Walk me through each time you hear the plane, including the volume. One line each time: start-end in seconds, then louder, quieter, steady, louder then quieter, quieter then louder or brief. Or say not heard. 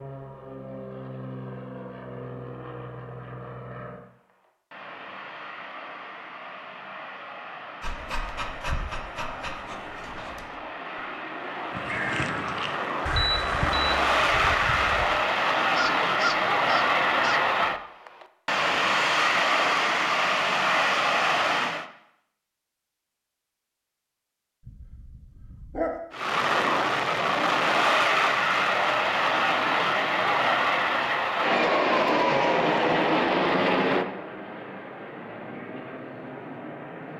0.0-21.9 louder
26.1-37.1 quieter.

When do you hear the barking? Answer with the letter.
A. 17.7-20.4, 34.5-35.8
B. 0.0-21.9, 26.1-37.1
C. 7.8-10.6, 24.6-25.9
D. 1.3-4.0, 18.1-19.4
C.